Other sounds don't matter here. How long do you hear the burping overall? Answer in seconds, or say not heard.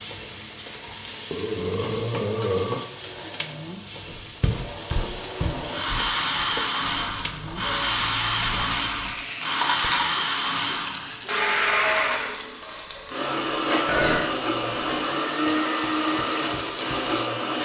3 s.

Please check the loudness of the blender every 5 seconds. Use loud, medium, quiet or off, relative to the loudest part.
quiet, loud, loud, loud.